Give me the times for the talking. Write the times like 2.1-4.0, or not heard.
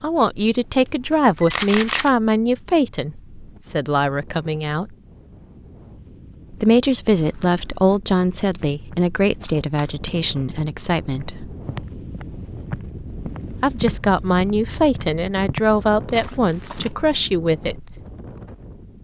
0.0-4.9, 6.5-11.5, 13.6-17.9.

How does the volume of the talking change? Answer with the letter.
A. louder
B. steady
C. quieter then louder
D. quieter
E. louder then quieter
B.